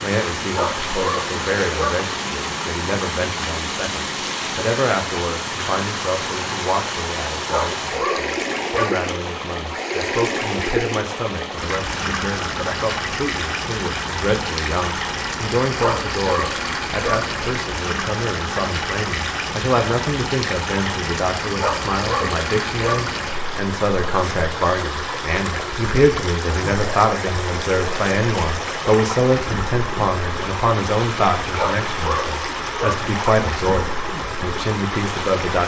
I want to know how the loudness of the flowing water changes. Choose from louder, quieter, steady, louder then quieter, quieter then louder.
steady.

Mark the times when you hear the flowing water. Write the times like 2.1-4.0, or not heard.
0.0-35.6.